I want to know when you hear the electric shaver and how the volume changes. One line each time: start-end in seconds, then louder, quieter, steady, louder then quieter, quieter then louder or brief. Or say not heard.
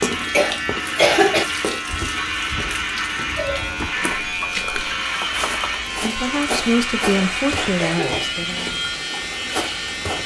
0.0-10.2 steady.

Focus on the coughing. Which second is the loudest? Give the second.
1 s.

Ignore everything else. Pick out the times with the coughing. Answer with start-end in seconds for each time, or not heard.
0.3-1.4, 7.1-8.2.